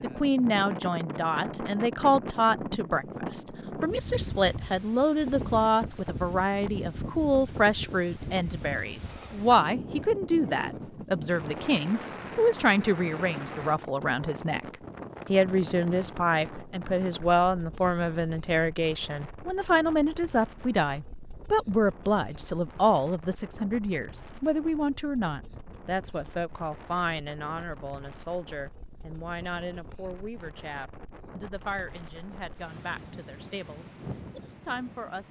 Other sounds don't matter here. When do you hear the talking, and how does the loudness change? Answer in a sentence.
The talking can be heard from 0.0 to 35.2 s, getting quieter.